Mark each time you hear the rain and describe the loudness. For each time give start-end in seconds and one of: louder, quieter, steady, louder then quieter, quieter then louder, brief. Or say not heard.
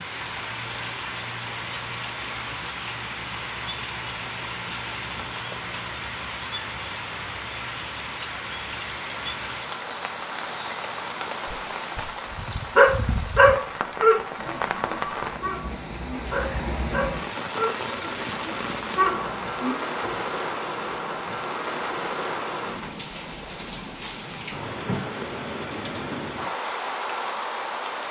0.0-28.0 steady.